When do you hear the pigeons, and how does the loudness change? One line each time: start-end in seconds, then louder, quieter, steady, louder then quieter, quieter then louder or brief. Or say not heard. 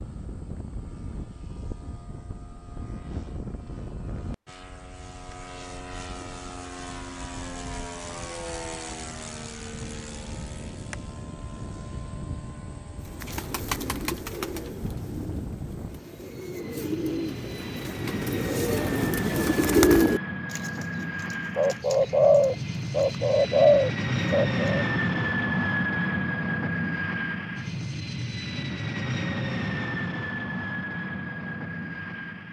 13.1-24.9 louder.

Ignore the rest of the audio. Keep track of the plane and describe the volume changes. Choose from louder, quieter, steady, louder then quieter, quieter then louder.
louder.